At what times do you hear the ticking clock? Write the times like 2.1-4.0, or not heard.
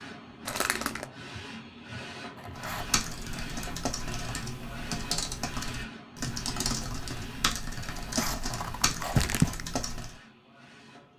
not heard.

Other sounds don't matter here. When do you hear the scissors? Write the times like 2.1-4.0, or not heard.
2.4-3.0, 7.9-9.6.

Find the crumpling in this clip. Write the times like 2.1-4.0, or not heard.
0.5-1.1, 8.9-9.7.